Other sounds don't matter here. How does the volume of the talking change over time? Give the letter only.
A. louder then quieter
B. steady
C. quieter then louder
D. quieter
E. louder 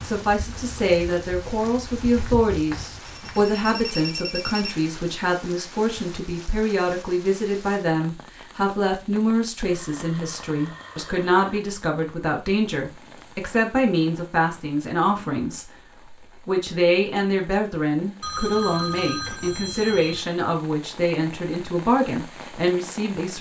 B.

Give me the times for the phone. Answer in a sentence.
You can hear the phone from 3.0 to 4.8 s, from 9.6 to 11.6 s and from 18.2 to 20.2 s.